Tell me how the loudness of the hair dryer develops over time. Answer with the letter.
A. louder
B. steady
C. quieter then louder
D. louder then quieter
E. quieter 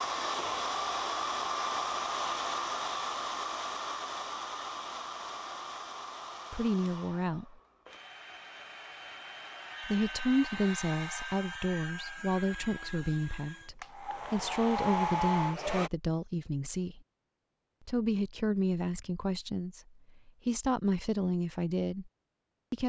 C.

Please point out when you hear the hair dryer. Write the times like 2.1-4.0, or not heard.
0.0-15.9.